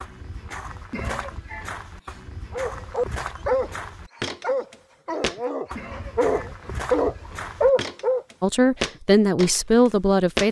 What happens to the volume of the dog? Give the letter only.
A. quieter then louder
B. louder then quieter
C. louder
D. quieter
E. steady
A.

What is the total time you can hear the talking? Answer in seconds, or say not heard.
2 s.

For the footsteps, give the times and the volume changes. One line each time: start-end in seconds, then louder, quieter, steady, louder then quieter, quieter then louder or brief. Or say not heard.
0.0-10.4 louder.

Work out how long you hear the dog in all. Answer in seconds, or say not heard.
6 s.